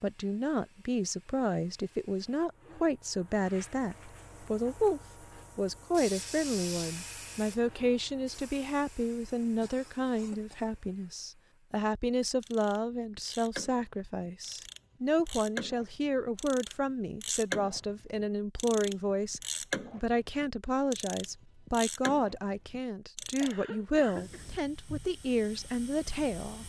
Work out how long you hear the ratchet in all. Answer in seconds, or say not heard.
11 s.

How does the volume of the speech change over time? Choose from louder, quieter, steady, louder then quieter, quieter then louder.
steady.